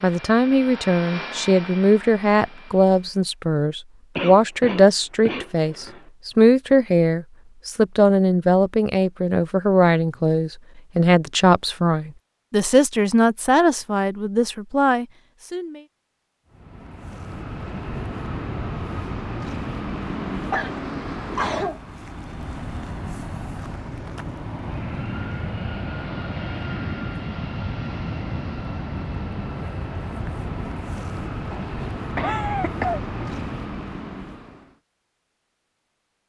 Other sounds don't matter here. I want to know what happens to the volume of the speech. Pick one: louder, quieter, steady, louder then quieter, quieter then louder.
steady.